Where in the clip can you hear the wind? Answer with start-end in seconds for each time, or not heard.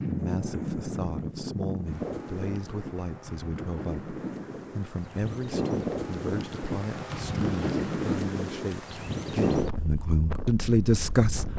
0.0-11.5.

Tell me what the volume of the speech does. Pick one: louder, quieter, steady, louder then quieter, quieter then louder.
louder.